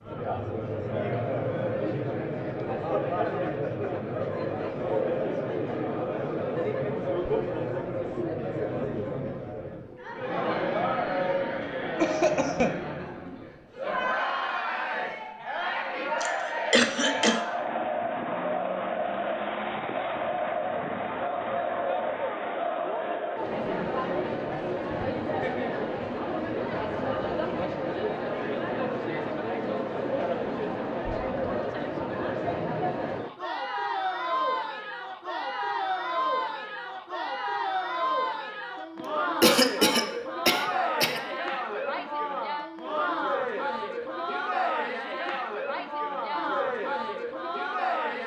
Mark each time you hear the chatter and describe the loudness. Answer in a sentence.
You can hear the chatter from 0.0 to 48.2 s, at a steady volume.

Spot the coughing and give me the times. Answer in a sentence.
The coughing can be heard from 12.0 to 12.8 s, from 16.2 to 17.4 s and from 39.0 to 41.2 s.